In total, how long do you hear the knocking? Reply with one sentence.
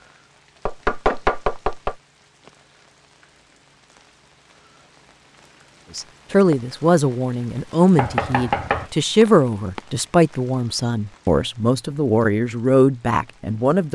You can hear the knocking for 2 seconds altogether.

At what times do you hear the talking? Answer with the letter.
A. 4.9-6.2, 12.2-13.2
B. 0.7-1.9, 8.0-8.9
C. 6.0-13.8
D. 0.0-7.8
C.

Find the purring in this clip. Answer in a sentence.
The purring can't be heard in this clip.